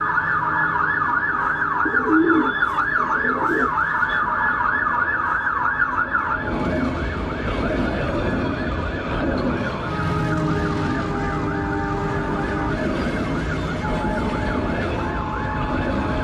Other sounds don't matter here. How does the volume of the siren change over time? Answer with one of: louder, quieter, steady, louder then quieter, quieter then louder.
quieter.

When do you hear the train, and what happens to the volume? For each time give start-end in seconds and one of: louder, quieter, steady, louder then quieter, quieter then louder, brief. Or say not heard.
0.0-16.1 louder.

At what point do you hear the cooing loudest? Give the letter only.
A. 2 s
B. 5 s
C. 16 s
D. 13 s
A.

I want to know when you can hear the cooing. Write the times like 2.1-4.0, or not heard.
1.9-4.2.